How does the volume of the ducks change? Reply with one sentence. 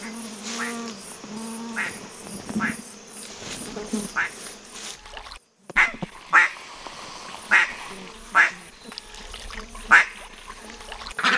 The loudness of the ducks goes up.